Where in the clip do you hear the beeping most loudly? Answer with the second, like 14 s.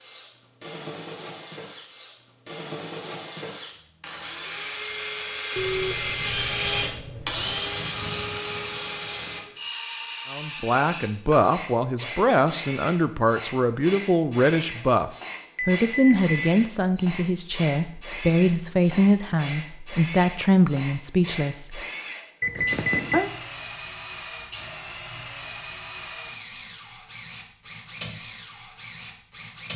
23 s.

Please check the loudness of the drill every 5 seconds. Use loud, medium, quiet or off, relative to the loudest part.
medium, loud, medium, medium, medium, medium.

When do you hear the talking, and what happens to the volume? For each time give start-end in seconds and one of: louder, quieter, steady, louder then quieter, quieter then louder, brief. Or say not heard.
10.3-21.8 steady.